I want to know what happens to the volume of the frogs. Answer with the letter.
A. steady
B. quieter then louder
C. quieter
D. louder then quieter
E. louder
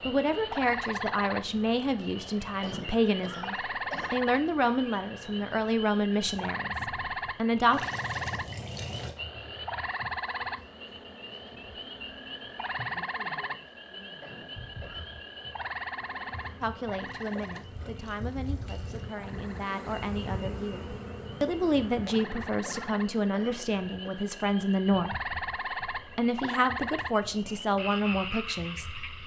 B.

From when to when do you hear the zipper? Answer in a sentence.
You can't hear the zipper here.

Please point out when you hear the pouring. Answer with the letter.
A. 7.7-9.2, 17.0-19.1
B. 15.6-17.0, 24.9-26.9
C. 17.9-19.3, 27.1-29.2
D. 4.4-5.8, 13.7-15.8
A.